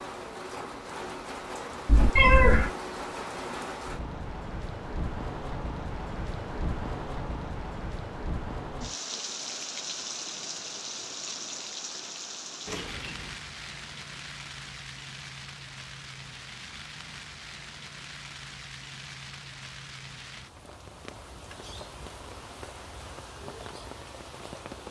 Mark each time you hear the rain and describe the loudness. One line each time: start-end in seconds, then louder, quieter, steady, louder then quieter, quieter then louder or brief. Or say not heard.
0.0-24.8 quieter.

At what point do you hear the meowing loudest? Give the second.
2 s.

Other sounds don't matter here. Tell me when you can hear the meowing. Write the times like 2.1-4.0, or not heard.
1.9-2.7, 12.7-13.3.